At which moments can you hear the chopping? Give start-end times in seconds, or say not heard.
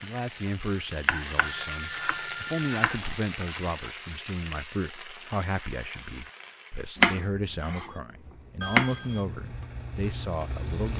1.1-3.6, 7.0-8.9.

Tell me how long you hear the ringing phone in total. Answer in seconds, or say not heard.
2 s.